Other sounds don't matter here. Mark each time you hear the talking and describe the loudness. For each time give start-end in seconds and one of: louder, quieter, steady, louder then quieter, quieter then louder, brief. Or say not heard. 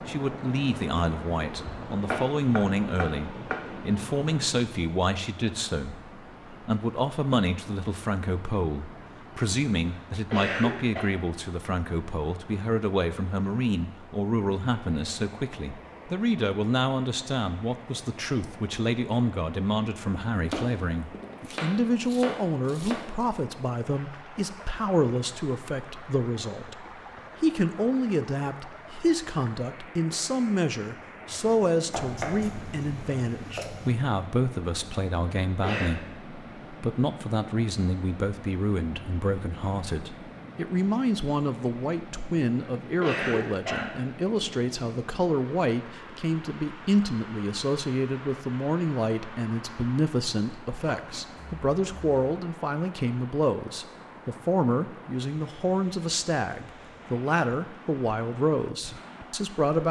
0.0-59.8 steady.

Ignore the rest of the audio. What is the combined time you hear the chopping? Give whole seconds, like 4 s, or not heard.
8 s.